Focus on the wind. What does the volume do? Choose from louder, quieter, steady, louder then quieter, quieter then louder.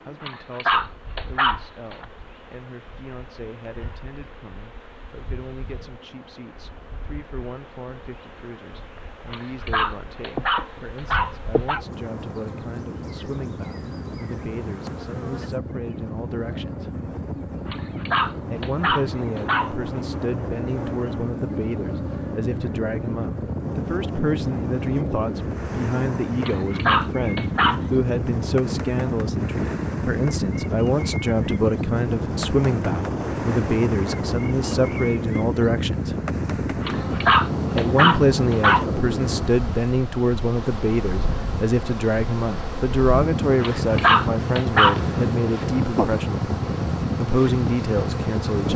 louder.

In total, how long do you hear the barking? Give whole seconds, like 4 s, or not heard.
11 s.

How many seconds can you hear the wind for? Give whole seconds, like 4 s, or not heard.
49 s.